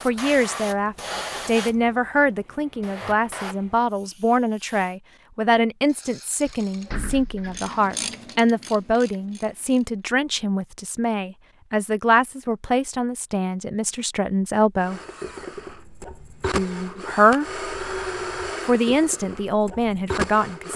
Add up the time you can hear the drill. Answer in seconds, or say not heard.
6 s.